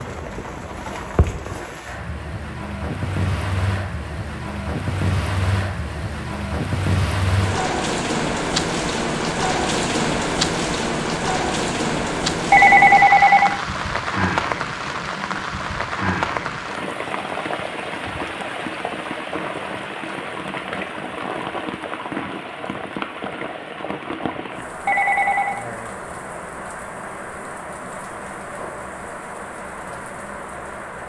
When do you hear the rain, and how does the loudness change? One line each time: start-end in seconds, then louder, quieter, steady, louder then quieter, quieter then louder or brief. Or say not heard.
0.0-31.0 louder then quieter.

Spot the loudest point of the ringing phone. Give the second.
13 s.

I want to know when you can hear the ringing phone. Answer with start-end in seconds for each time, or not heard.
12.5-13.6, 24.9-25.6.